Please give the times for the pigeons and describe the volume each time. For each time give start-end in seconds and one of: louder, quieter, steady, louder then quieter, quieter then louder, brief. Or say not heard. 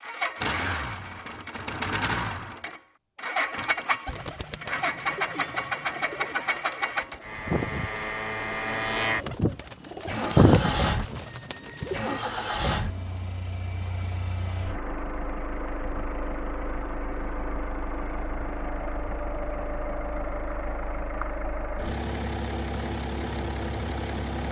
4.0-12.2 louder.